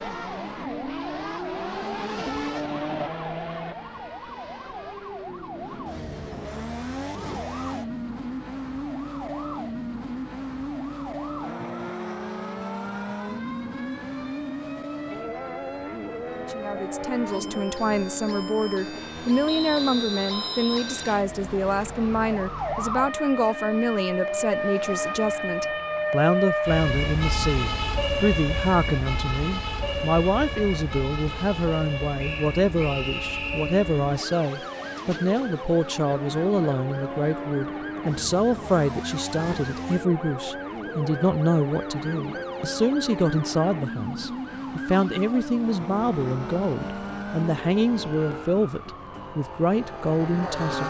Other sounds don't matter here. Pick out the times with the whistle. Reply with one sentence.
The whistle can be heard from 19.4 to 21.2 s and from 32.1 to 33.7 s.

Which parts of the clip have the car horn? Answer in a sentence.
You can't hear the car horn here.